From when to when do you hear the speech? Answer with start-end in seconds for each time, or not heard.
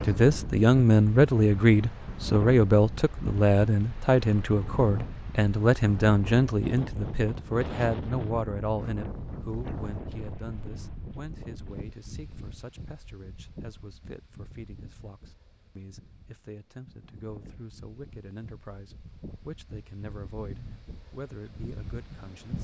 0.0-22.6.